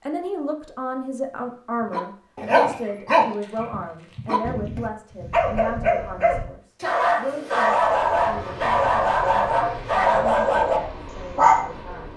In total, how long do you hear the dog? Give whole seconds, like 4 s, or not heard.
10 s.